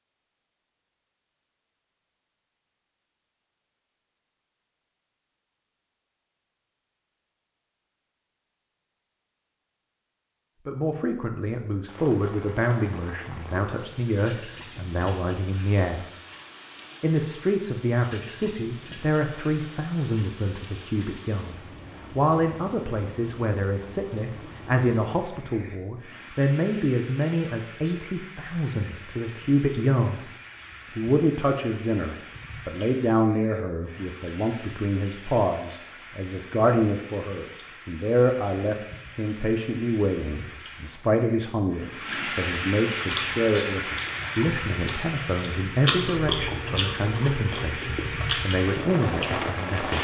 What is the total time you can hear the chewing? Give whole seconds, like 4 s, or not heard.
6 s.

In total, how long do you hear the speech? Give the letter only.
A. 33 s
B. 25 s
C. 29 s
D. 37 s
D.